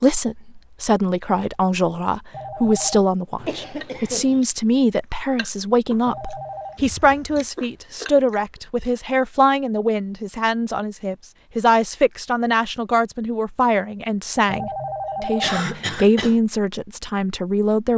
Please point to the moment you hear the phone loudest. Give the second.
15 s.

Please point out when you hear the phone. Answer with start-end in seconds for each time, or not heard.
2.3-3.0, 6.0-6.8, 14.4-15.7.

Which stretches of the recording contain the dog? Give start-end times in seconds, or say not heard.
not heard.